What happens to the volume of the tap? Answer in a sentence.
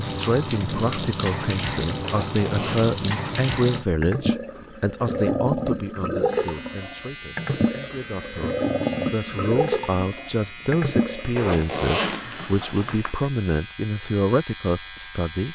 The volume of the tap stays about the same.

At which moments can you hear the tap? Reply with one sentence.
You can hear the tap from 0.0 to 11.4 s.